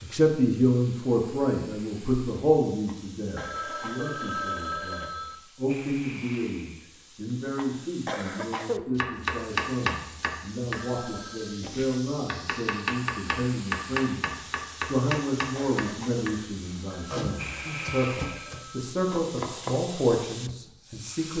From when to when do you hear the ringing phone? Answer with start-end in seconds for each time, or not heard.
3.4-5.4, 10.8-11.7, 16.9-18.9.